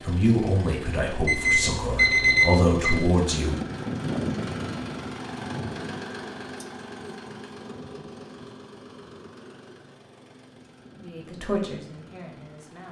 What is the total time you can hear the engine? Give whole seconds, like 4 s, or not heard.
13 s.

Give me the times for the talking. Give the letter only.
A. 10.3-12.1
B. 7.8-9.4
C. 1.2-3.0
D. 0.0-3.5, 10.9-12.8
D.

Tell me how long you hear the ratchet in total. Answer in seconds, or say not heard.
not heard.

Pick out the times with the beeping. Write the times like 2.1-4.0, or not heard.
1.2-3.0.